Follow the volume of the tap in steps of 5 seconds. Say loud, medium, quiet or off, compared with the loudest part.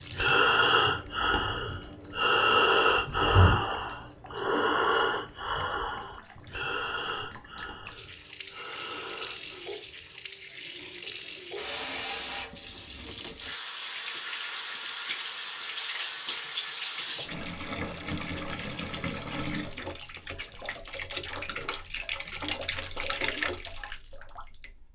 quiet, medium, loud, loud, loud.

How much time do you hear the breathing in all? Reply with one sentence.
You can hear the breathing for 10 seconds altogether.